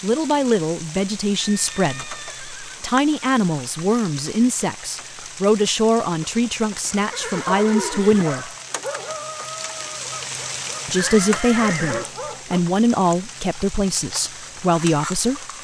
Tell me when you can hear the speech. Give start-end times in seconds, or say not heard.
0.0-8.5, 10.8-15.5.